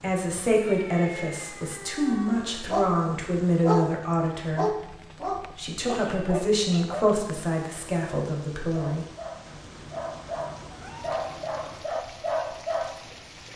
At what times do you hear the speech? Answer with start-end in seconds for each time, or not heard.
0.0-4.8, 5.5-9.1.